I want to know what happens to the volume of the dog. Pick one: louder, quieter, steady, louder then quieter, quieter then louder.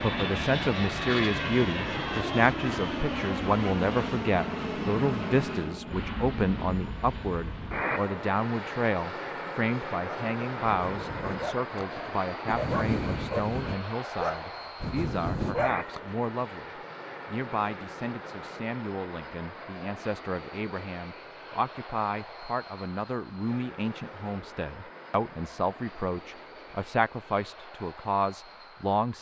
louder.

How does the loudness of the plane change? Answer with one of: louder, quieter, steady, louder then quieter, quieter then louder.
quieter.